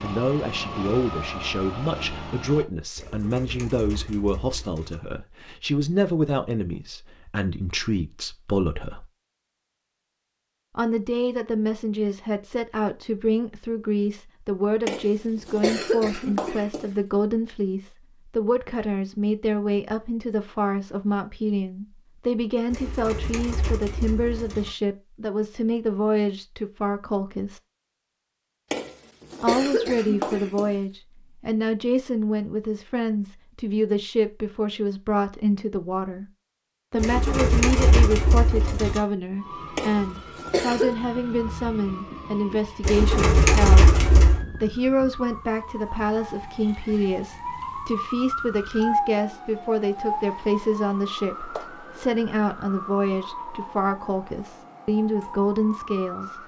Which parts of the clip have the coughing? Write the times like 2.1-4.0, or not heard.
14.8-16.9, 28.7-30.8, 39.8-41.0.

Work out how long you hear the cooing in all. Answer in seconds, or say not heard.
8 s.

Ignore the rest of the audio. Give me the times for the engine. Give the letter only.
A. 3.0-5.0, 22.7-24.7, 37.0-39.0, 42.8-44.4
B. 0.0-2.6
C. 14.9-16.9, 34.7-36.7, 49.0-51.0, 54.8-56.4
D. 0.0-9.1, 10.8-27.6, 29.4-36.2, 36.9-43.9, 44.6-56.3
B.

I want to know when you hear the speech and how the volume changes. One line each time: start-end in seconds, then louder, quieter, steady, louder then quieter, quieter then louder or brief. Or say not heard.
0.0-9.1 steady
10.8-27.6 steady
29.4-36.2 steady
36.9-43.9 steady
44.6-56.3 steady.